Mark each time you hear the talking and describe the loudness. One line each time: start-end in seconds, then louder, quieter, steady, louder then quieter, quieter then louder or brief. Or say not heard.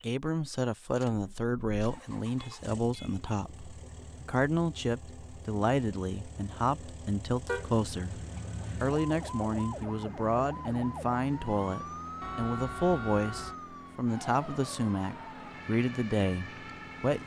0.0-17.2 steady.